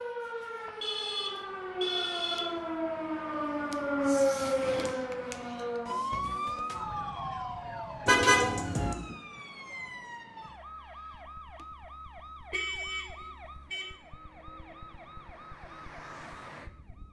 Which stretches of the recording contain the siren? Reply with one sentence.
The siren can be heard from 0.0 to 17.0 s.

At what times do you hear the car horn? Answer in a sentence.
You can hear the car horn from 0.8 to 2.6 s, from 8.1 to 8.9 s and from 12.5 to 13.9 s.